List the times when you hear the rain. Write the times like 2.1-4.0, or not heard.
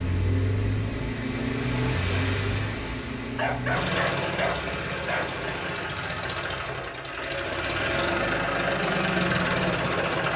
0.0-7.0.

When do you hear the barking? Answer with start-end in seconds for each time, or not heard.
3.4-5.3.